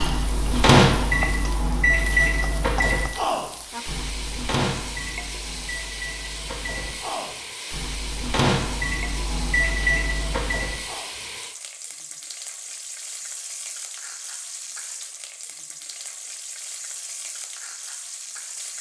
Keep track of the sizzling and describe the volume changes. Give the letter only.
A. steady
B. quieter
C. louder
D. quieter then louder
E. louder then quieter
A.